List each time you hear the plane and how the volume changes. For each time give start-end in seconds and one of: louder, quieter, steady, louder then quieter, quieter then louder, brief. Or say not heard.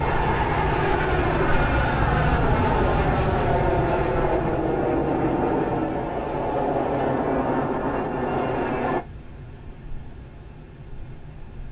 0.0-9.0 steady.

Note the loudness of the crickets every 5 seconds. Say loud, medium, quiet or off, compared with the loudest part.
loud, quiet, quiet.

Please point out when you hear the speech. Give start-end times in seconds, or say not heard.
not heard.